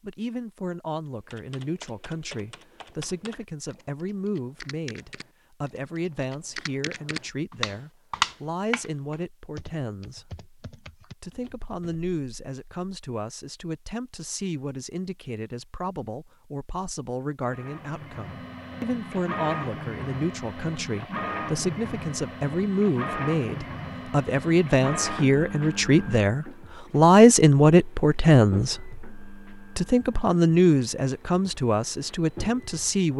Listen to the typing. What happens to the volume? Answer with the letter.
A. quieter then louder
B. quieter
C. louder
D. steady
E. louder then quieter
E.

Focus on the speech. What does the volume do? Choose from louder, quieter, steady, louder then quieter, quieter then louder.
louder.